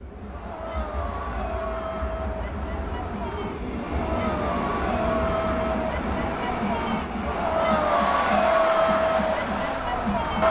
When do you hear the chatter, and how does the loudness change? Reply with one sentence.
You can hear the chatter from 0.0 to 10.4 s, getting louder.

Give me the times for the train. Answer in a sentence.
You can hear the train from 0.0 to 10.4 s.